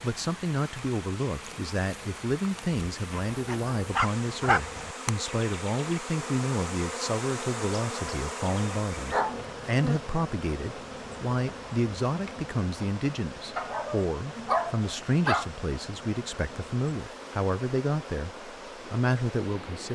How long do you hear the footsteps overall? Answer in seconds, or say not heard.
not heard.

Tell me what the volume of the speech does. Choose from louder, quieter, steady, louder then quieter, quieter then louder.
steady.